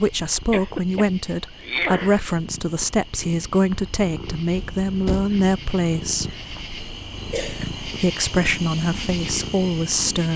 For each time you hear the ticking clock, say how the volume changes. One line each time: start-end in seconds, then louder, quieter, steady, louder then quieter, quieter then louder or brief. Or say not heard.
not heard.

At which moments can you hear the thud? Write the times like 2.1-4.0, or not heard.
4.5-5.3.